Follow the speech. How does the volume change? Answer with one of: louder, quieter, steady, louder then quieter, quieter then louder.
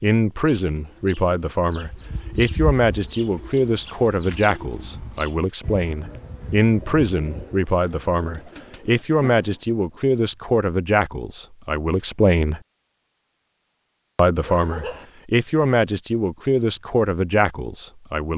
steady.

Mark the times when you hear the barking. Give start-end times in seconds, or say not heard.
14.4-15.1.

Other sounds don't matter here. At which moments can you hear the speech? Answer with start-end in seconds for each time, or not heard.
0.0-12.6, 14.2-18.3.